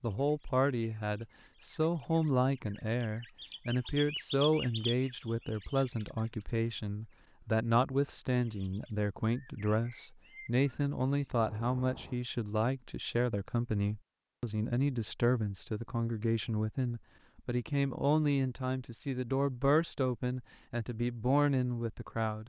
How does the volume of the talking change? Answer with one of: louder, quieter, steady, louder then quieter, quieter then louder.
steady.